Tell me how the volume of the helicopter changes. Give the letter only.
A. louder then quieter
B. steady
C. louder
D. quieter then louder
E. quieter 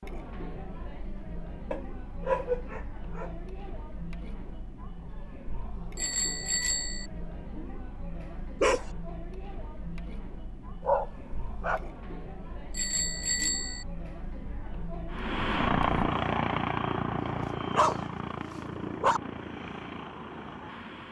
E.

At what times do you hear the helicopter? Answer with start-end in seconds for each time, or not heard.
15.1-21.0.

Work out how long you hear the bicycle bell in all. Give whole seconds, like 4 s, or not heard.
2 s.